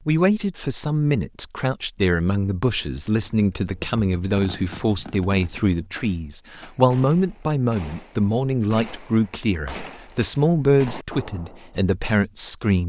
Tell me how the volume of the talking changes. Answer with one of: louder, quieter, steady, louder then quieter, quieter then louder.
steady.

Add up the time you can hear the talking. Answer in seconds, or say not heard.
13 s.